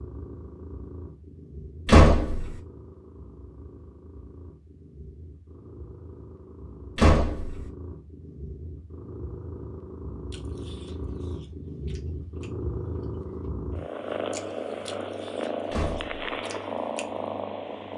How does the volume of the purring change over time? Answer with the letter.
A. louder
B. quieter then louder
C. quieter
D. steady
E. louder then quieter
A.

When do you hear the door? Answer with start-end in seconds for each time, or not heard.
1.9-2.6, 7.0-7.7, 15.7-16.4.